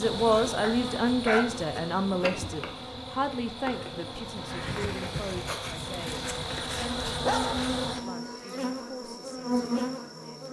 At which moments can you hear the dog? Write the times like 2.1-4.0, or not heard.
0.6-1.6, 7.2-8.1.